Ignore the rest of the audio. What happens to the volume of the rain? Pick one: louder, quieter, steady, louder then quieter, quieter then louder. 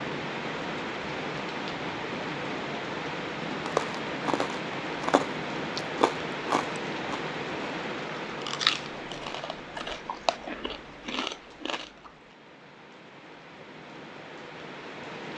quieter.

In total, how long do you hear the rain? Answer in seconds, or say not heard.
15 s.